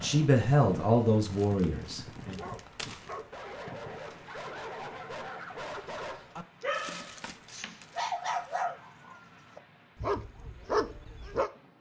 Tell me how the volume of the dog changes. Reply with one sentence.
The loudness of the dog goes up.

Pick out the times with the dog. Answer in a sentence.
The dog can be heard from 2.2 to 11.5 s.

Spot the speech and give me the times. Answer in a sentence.
The speech can be heard from 0.0 to 2.4 s.